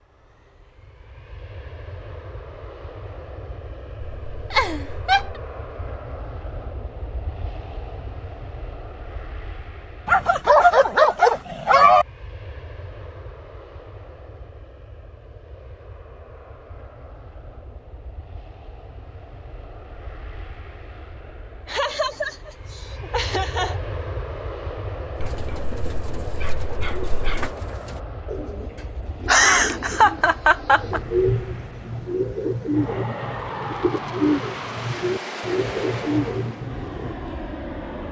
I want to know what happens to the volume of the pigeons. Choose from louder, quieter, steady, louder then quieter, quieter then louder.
louder.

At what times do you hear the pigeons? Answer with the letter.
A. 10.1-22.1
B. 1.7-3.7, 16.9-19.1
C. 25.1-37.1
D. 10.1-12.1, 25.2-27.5
C.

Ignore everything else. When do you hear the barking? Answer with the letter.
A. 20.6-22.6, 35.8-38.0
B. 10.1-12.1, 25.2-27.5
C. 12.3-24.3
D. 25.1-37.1
B.